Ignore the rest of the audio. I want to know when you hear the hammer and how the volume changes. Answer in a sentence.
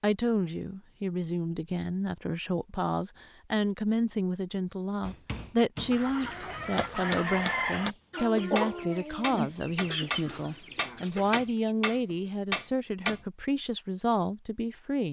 You can hear the hammer from 5.0 to 13.2 s, getting louder.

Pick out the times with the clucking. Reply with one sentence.
You can hear the clucking from 5.9 to 11.8 s.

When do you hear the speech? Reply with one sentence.
The speech can be heard from 0.0 to 15.0 s.